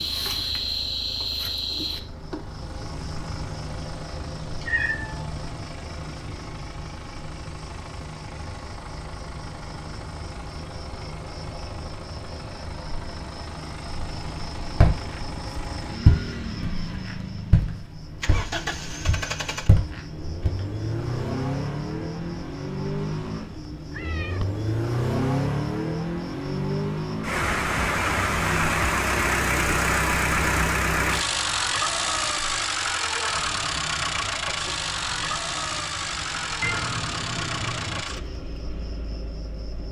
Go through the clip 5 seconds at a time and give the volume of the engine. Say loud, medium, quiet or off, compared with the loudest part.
quiet, quiet, quiet, medium, medium, loud, loud, medium.